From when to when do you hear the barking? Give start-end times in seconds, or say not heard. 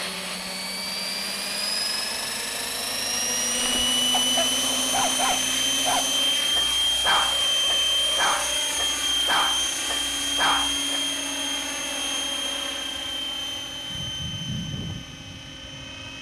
3.5-11.0.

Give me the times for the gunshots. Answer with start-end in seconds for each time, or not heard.
not heard.